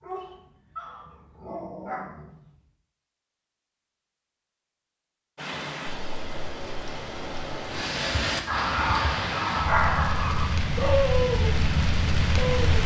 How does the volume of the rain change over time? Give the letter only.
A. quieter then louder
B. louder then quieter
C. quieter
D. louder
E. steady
D.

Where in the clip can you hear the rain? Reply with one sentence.
The rain can be heard from 5.3 to 12.8 s.